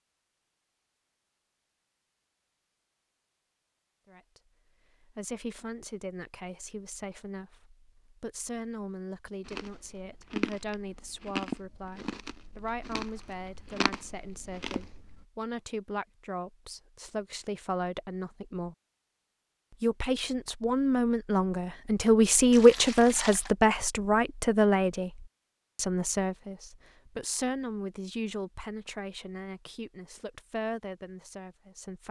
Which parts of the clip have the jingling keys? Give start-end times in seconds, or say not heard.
not heard.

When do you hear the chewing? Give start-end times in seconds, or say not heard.
9.4-15.2.